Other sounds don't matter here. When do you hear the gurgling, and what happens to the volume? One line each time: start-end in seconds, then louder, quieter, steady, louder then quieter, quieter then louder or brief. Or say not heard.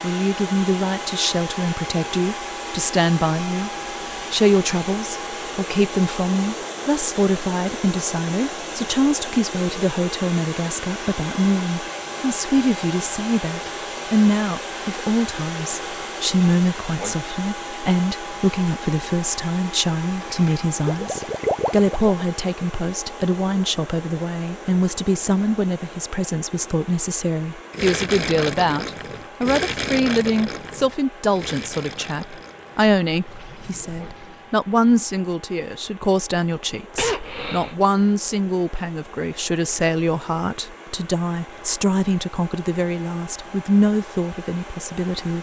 20.1-22.2 brief
27.7-34.5 quieter.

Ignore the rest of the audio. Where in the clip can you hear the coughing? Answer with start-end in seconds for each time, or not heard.
37.0-37.8.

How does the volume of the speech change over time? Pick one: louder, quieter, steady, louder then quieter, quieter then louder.
steady.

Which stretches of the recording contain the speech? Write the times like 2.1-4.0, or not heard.
0.0-3.7, 4.3-45.3.